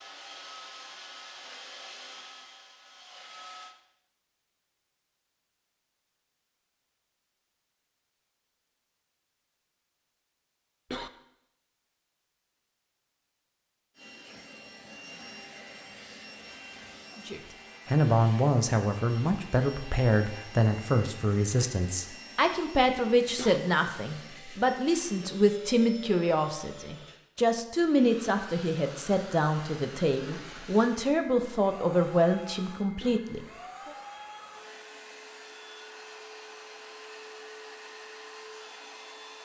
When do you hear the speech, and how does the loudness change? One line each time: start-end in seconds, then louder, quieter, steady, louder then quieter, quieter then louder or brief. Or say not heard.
17.2-33.9 steady.